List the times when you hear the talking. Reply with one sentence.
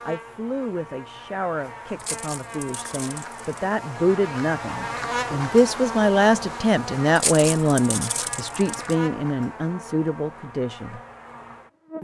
The talking can be heard from 0.0 to 11.0 s.